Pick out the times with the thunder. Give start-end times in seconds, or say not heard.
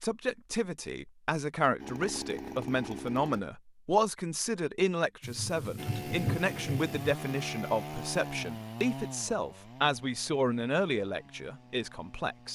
5.2-6.9.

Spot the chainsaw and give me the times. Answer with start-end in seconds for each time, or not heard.
1.8-3.5, 5.8-12.5.